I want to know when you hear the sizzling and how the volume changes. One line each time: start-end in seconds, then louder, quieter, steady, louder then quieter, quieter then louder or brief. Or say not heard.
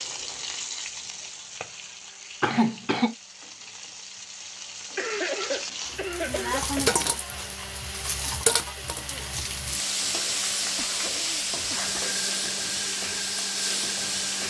0.0-14.4 louder.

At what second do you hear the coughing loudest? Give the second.
3 s.